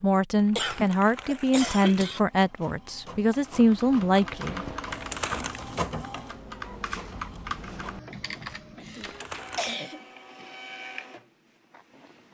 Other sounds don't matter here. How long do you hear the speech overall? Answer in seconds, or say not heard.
5 s.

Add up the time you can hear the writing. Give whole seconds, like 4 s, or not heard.
not heard.